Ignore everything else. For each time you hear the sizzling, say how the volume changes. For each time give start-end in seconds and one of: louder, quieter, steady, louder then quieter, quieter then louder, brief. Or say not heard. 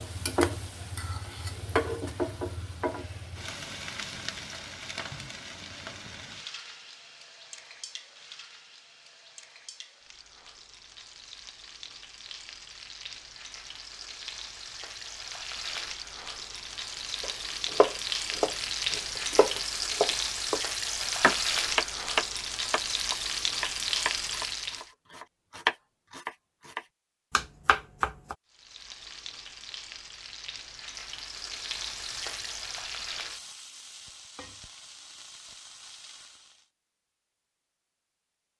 0.0-24.9 quieter then louder
28.5-36.6 louder then quieter.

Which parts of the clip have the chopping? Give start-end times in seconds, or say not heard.
17.2-28.4.